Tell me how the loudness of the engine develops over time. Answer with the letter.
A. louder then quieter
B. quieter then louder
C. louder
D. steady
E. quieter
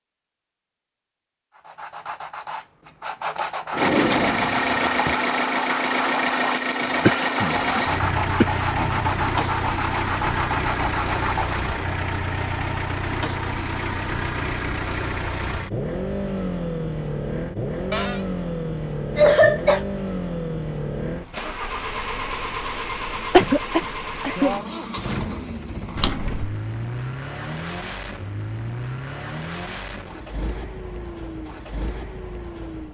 E.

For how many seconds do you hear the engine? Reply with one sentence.
You can hear the engine for 29 seconds altogether.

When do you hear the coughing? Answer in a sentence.
The coughing can be heard from 7.0 to 9.2 s, from 19.1 to 19.8 s and from 23.3 to 24.6 s.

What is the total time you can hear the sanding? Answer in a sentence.
You can hear the sanding for 10 seconds altogether.